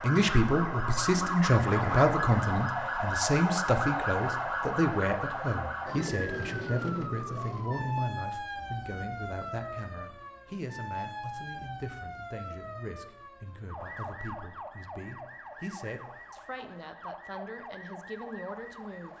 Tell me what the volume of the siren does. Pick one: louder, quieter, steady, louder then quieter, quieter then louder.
quieter.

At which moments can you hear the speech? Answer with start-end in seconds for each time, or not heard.
0.0-19.1.